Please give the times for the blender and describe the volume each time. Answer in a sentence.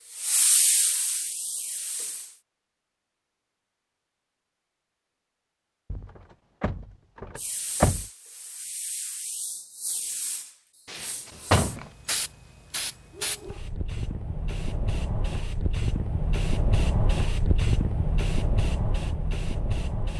You can't hear the blender here.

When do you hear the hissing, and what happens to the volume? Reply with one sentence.
You can hear the hissing briefly from 0.1 to 2.4 s; and from 7.3 to 20.1 s, getting louder.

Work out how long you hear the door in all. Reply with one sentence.
You can hear the door for 3 seconds altogether.